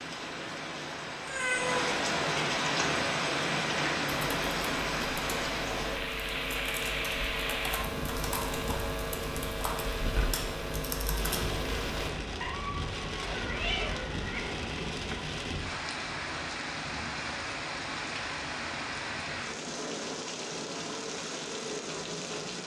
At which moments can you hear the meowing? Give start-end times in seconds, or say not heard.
1.2-1.9, 12.4-14.4.